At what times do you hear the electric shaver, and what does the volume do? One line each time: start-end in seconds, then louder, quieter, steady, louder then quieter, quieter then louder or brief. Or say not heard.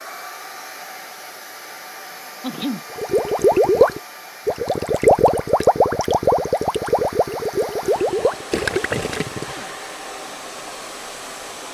not heard.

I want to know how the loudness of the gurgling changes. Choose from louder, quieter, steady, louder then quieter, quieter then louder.
quieter.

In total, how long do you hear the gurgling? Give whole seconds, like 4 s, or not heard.
7 s.